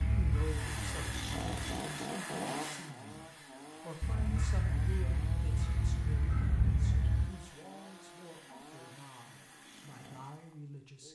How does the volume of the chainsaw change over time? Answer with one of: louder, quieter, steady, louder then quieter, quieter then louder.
quieter.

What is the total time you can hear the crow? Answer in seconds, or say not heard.
5 s.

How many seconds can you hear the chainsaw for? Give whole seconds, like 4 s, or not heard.
11 s.